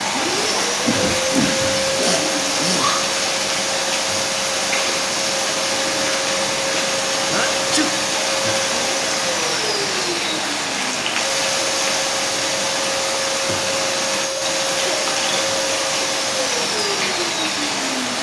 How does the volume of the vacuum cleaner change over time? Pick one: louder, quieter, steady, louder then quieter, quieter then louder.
steady.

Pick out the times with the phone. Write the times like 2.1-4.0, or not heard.
not heard.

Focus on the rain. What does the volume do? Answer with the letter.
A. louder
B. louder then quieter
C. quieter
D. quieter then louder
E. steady
E.